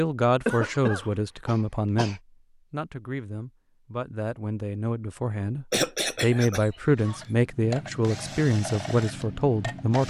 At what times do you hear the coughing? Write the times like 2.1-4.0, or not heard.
0.5-2.2, 5.7-7.2.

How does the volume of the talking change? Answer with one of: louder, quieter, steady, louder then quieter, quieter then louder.
quieter then louder.